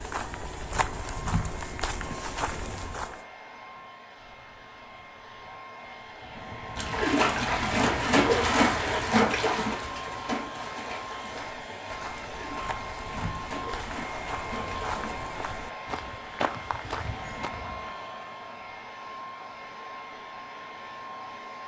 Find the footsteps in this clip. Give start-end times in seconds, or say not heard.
0.0-3.2, 11.4-17.9.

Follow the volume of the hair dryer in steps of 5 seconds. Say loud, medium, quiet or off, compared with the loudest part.
medium, loud, loud, loud, loud.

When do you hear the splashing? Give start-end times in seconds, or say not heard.
6.8-15.2.